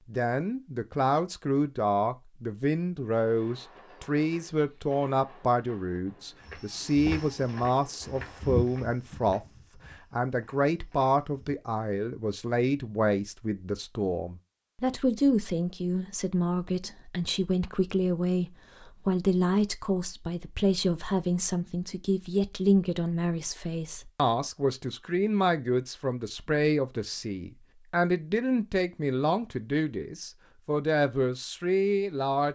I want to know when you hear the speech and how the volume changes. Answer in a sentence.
The speech can be heard from 0.1 to 32.5 s, at a steady volume.